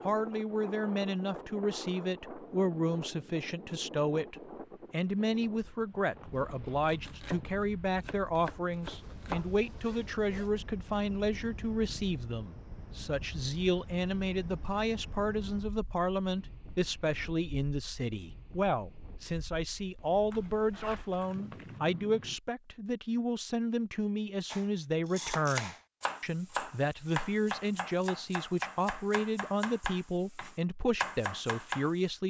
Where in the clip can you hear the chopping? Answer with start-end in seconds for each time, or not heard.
6.8-9.5, 24.5-31.9.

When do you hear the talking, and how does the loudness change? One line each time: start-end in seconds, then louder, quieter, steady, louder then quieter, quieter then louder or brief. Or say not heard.
0.0-32.2 steady.